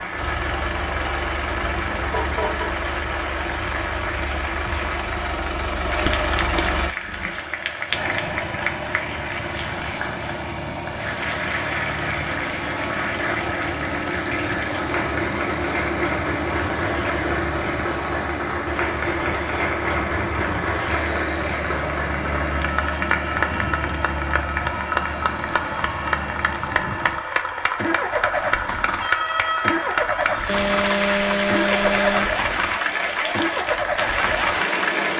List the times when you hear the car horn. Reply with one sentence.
You can hear the car horn from 1.3 to 2.8 s and from 30.4 to 32.4 s.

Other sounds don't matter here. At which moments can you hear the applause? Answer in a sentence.
You can hear the applause from 0.0 to 35.1 s.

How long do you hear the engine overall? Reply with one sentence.
You can hear the engine for 35 seconds altogether.